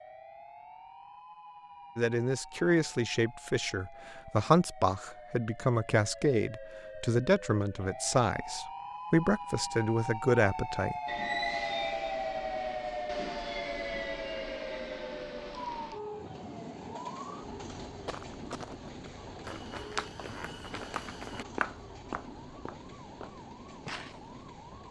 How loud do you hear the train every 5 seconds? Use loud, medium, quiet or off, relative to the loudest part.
off, off, loud, medium, medium.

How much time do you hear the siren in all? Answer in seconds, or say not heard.
25 s.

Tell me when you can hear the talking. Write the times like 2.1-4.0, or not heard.
1.9-10.9.